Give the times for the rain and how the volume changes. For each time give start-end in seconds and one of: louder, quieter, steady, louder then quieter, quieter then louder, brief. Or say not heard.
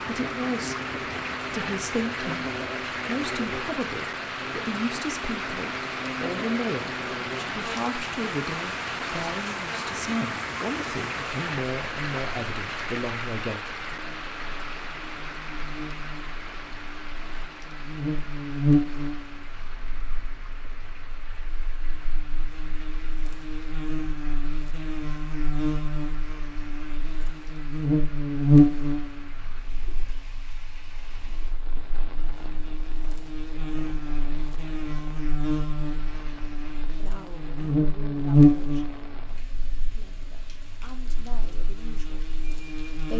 0.0-43.1 quieter.